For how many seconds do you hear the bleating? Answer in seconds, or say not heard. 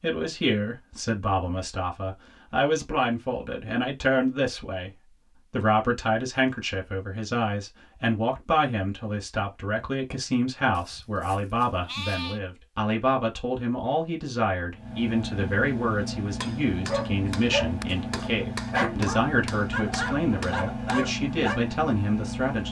2 s.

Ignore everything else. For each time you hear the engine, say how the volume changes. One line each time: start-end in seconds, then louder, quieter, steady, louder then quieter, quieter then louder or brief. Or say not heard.
14.7-22.6 steady.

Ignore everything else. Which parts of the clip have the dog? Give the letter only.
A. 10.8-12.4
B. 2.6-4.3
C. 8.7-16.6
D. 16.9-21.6
D.